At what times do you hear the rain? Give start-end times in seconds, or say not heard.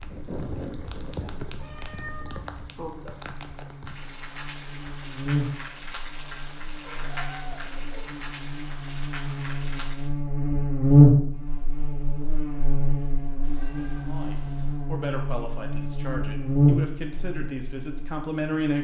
0.0-10.1.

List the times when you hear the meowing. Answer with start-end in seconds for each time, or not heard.
1.6-3.0, 6.8-8.1, 13.4-14.8.